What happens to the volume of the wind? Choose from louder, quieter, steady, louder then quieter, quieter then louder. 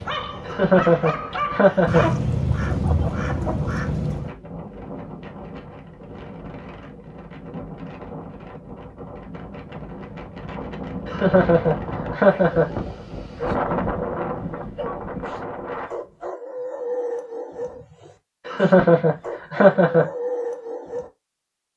louder.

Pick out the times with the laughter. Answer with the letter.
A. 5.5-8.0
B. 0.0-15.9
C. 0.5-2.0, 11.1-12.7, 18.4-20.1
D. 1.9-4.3
C.